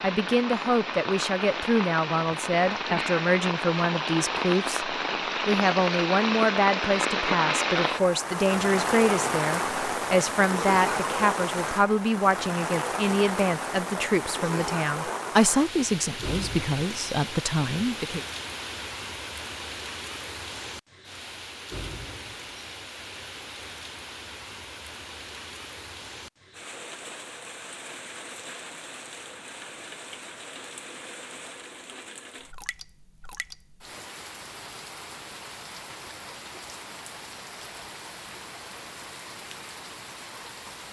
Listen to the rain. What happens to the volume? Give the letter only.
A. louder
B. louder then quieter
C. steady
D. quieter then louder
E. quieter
E.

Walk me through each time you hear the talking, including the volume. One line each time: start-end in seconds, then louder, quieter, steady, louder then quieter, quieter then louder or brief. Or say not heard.
0.0-18.2 steady.